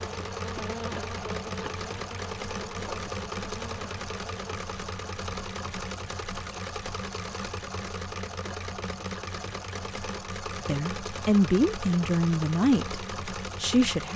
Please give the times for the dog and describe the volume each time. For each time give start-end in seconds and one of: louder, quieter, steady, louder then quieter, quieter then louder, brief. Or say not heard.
not heard.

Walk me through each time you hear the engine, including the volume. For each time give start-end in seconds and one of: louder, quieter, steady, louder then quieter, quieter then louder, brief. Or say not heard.
0.0-14.1 steady.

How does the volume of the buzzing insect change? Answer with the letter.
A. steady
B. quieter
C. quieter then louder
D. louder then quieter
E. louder
B.